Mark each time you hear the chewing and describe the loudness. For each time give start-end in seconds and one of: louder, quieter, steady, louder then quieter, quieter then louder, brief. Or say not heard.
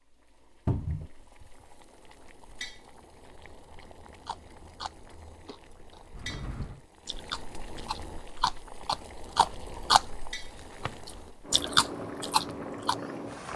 3.8-10.1 quieter then louder
11.1-12.9 brief.